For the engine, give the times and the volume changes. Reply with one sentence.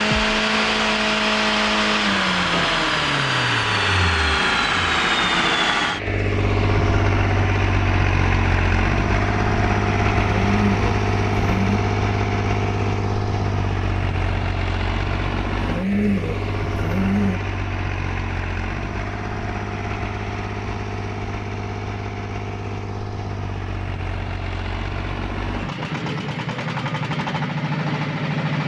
The engine can be heard from 0.0 to 28.6 s, getting quieter.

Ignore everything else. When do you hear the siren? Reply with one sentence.
You can't hear the siren here.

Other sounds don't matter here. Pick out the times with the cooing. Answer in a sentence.
The cooing can be heard from 10.2 to 11.8 s and from 15.6 to 17.4 s.